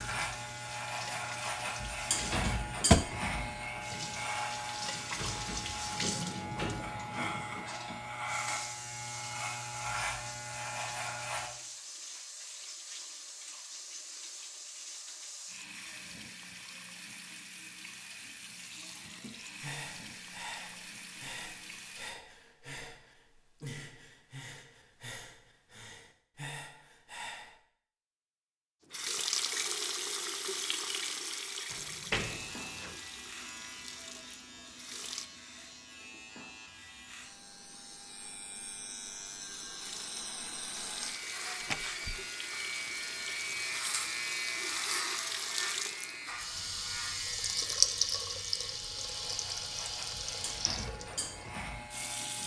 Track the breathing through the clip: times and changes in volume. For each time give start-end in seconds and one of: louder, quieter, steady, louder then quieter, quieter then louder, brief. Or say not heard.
19.3-27.6 steady.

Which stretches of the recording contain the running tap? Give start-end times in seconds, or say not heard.
0.0-22.2, 28.9-35.3, 39.8-52.4.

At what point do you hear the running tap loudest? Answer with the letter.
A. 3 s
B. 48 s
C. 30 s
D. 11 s
B.